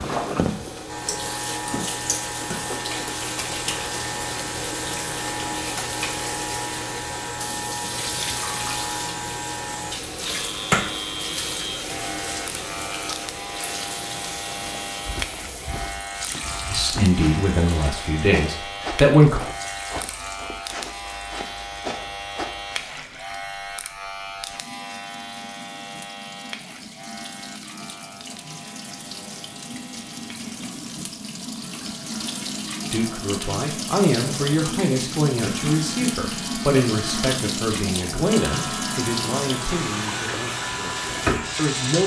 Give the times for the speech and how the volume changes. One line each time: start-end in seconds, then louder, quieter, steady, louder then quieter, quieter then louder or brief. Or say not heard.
16.7-19.4 brief
32.9-42.0 quieter.